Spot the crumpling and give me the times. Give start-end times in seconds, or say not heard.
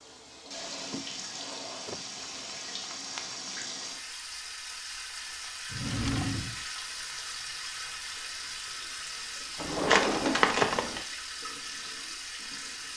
2.1-3.5, 9.8-11.0.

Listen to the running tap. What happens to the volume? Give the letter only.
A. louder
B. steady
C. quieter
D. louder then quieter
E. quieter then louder
B.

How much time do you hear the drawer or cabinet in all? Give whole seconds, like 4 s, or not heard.
4 s.